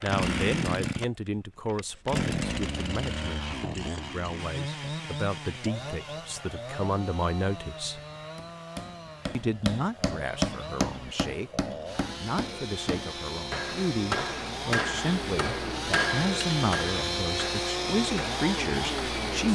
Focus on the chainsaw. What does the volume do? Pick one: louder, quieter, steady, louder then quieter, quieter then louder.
quieter then louder.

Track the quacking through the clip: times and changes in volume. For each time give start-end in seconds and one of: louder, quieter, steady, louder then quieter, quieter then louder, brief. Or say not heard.
not heard.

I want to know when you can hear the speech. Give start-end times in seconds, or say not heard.
0.0-8.0, 9.3-19.5.